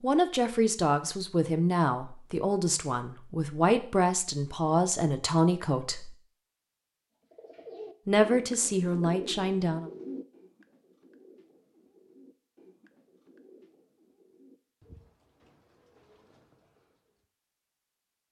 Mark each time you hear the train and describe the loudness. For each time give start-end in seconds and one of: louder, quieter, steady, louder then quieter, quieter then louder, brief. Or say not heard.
not heard.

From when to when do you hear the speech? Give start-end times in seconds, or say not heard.
0.0-6.2, 8.1-9.9.